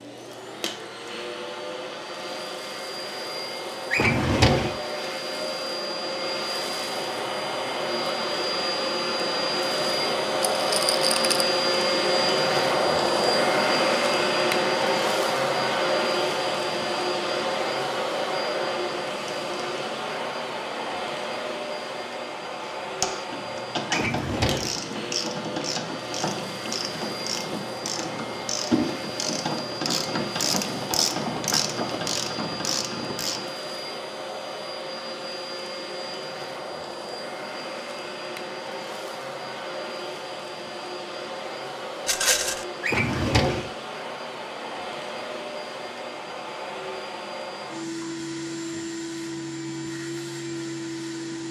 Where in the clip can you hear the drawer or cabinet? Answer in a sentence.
The drawer or cabinet can be heard from 3.9 to 4.8 s, from 23.9 to 24.8 s and from 42.8 to 43.7 s.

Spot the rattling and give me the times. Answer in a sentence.
The rattling can be heard from 10.5 to 11.4 s and from 42.0 to 42.6 s.